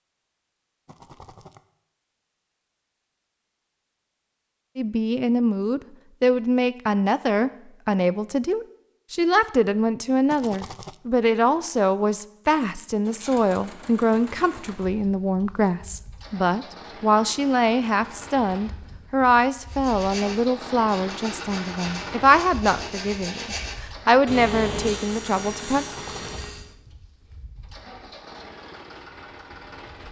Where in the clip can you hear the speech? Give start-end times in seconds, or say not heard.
4.8-25.9.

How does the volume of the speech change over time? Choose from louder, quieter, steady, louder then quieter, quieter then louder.
steady.